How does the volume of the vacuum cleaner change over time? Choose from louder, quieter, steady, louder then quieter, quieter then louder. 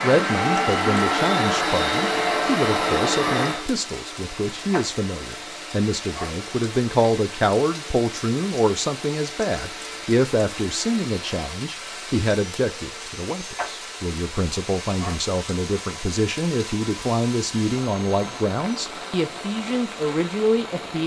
quieter.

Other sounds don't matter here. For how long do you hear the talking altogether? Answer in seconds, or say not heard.
21 s.